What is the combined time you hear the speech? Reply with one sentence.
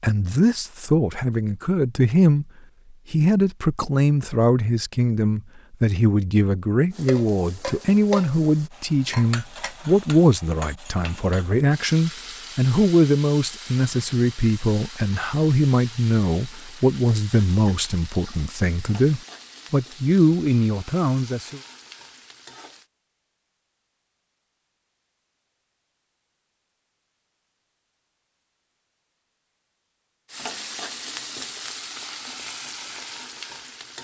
You can hear the speech for 21 seconds altogether.